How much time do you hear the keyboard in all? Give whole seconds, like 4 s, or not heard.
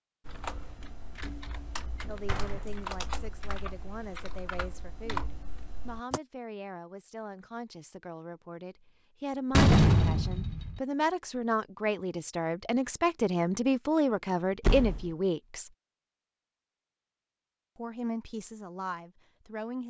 6 s.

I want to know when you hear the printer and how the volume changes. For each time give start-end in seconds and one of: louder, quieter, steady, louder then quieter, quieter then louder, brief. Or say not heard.
not heard.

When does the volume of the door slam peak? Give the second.
10 s.